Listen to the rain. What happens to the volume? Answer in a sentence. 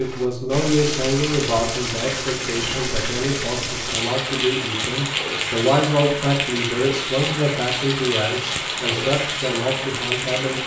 The volume of the rain stays about the same.